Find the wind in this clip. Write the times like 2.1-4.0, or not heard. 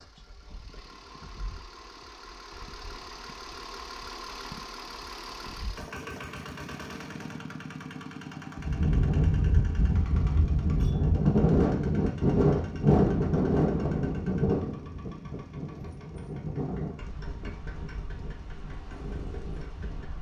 8.6-20.1.